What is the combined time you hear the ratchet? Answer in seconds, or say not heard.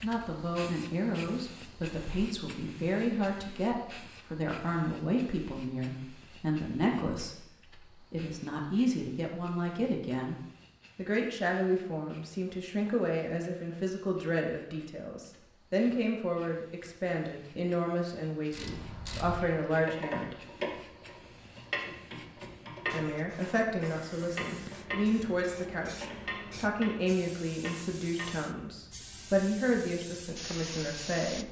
10 s.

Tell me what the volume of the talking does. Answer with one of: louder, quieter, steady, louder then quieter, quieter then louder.
steady.